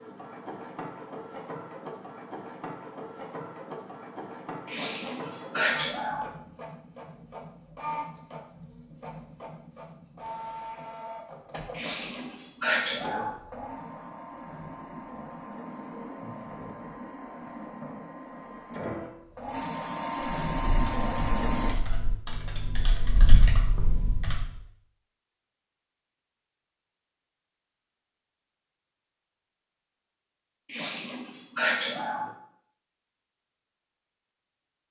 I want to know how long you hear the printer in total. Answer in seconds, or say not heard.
22 s.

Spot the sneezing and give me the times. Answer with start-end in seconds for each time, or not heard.
4.7-6.3, 11.8-13.3, 30.7-32.3.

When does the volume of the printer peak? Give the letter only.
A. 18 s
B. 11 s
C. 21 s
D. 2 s
C.